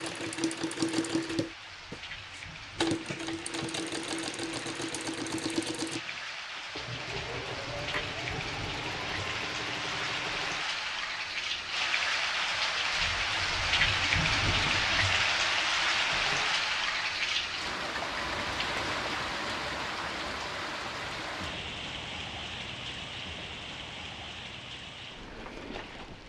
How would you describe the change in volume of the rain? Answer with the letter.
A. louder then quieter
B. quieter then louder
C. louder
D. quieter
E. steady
A.